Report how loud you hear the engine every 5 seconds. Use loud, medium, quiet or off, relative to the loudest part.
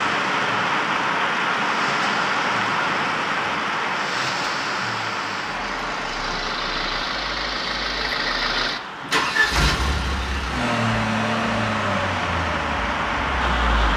medium, loud, loud.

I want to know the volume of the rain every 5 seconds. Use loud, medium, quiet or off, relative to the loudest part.
loud, medium, loud.